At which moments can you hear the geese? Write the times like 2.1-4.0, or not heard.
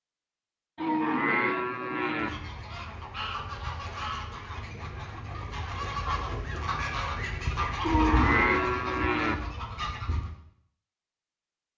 2.1-10.3.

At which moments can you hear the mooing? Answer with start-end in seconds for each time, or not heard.
0.8-2.3, 7.8-9.3.